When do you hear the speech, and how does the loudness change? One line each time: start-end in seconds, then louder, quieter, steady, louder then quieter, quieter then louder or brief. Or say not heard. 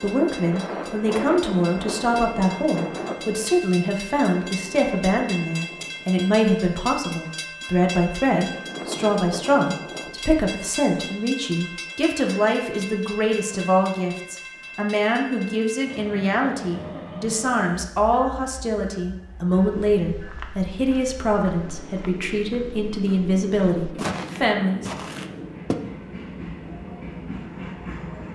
0.0-24.9 steady.